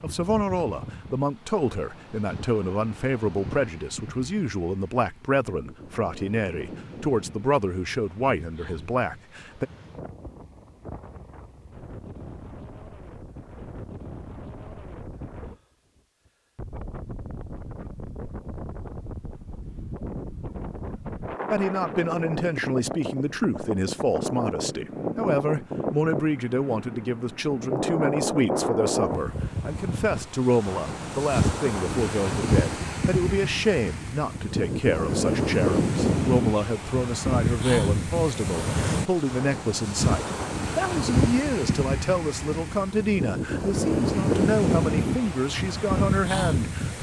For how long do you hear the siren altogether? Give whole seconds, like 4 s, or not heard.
not heard.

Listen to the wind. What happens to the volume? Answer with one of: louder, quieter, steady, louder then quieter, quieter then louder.
louder.